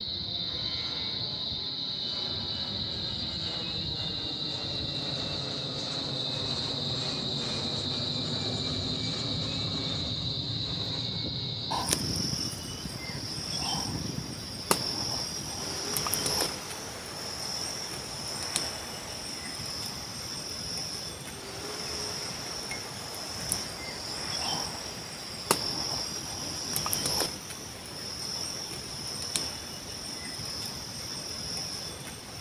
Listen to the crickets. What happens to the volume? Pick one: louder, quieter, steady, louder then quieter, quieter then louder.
steady.